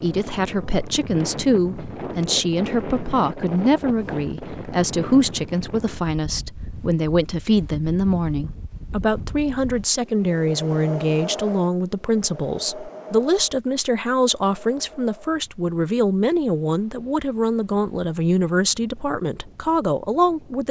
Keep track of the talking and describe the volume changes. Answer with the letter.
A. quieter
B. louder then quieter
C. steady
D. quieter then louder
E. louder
C.